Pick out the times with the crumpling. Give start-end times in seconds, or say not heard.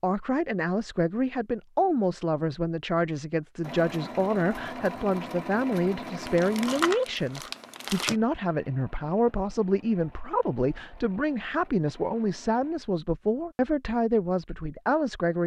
6.2-8.2.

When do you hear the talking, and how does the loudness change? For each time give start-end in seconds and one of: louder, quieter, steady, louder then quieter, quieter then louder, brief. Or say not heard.
0.0-15.4 steady.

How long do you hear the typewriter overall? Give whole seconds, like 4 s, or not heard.
not heard.